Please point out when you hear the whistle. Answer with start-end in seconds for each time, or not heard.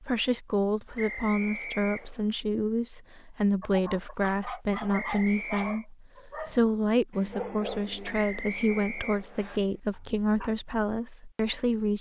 0.9-2.2, 4.9-5.8, 8.1-9.6.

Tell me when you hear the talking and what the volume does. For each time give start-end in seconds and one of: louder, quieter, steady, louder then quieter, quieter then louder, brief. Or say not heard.
0.0-11.9 steady.